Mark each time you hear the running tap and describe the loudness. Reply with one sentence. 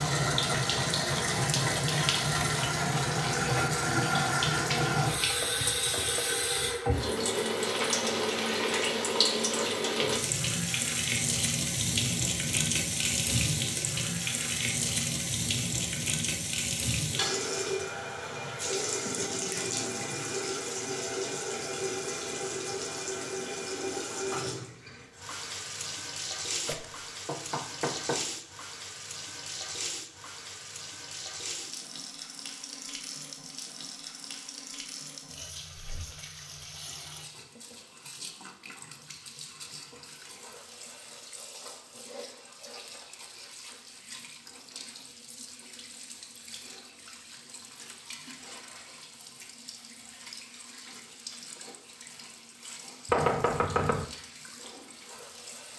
The running tap can be heard from 0.0 to 55.7 s, getting quieter.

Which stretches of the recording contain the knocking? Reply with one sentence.
The knocking can be heard from 5.4 to 6.2 s, from 26.6 to 28.2 s and from 53.0 to 54.1 s.